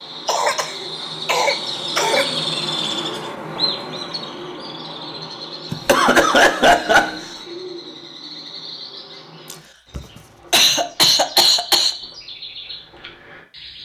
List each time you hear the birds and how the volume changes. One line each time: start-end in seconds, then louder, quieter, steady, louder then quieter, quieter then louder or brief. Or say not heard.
0.0-13.8 quieter.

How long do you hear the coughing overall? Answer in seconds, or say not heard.
6 s.